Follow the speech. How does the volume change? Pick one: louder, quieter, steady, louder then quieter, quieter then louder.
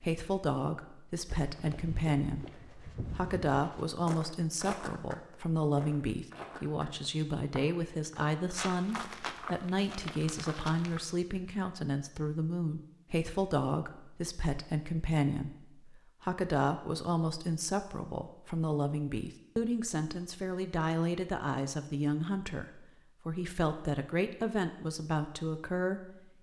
steady.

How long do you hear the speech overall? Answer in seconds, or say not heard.
26 s.